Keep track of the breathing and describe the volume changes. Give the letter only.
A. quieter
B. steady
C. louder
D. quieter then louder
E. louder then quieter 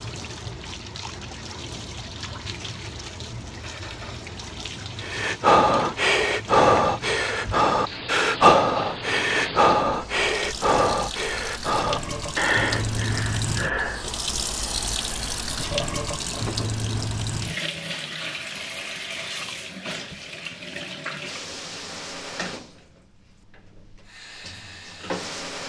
A.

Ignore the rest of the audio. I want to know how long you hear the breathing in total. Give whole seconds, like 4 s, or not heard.
9 s.